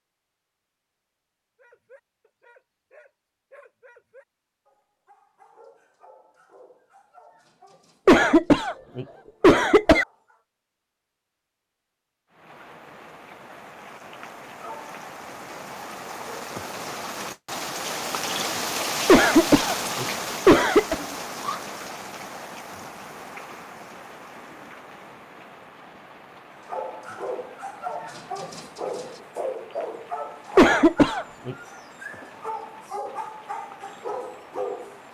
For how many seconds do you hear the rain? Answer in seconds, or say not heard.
23 s.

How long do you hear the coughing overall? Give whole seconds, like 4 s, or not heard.
5 s.